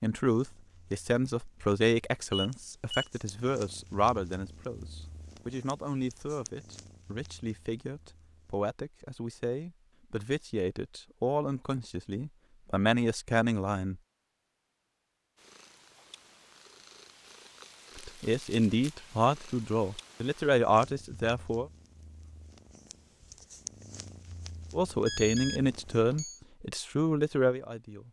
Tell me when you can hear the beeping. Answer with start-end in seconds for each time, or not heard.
2.3-3.0, 25.1-26.4.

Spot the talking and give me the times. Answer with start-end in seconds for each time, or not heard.
0.0-14.0, 17.9-21.7, 24.7-28.0.